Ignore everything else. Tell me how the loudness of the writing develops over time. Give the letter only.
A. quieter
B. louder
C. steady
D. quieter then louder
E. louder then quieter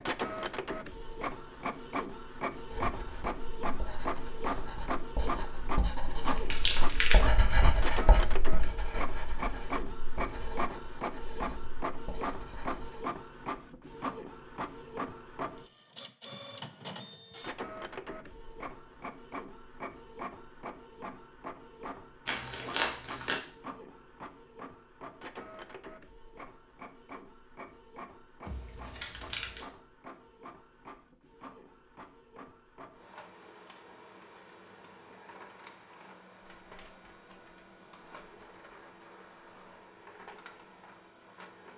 E.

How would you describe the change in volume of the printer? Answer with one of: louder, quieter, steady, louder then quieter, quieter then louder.
quieter.